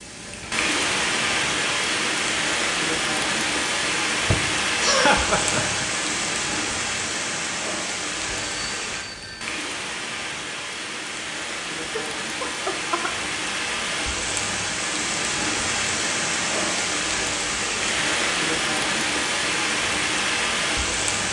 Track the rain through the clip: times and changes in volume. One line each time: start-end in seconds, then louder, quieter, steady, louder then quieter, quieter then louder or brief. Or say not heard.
0.0-21.2 quieter then louder.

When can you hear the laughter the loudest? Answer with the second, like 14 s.
5 s.